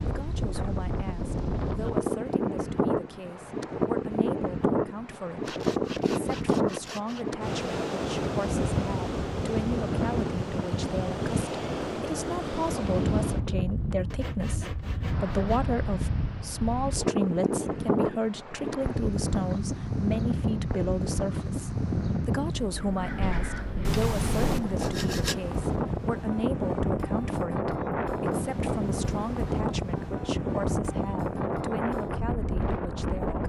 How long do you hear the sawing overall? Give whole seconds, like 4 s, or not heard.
5 s.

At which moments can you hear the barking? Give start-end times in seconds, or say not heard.
not heard.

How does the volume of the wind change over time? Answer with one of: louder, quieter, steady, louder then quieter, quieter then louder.
steady.